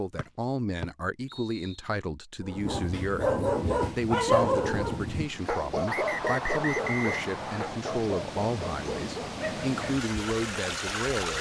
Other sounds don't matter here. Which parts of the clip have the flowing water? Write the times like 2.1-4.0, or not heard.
3.5-11.3.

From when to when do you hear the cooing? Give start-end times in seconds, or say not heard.
not heard.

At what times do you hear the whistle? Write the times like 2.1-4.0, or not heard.
0.1-1.8, 5.8-7.7.